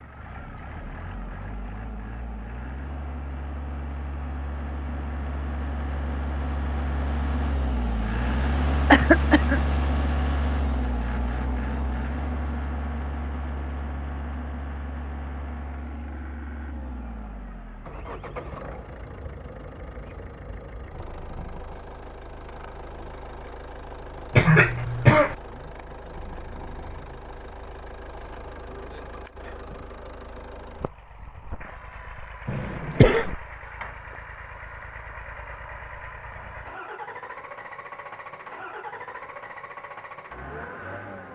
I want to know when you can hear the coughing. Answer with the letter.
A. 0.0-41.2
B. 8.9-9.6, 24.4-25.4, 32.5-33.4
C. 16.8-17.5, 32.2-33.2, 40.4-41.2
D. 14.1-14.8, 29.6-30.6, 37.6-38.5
B.